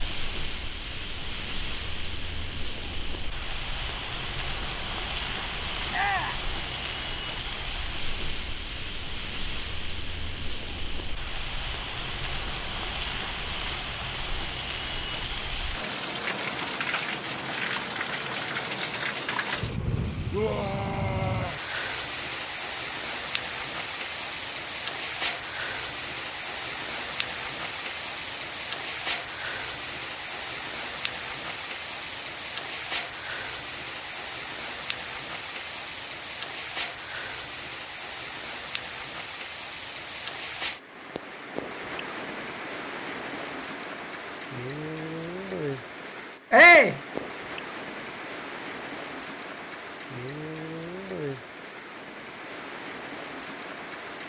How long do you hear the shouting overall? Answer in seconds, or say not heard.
2 s.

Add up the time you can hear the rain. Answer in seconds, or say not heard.
54 s.